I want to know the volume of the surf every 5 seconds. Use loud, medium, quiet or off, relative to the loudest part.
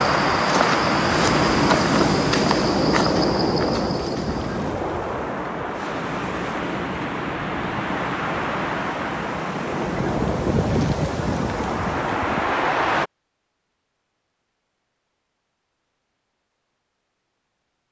loud, medium, loud, off.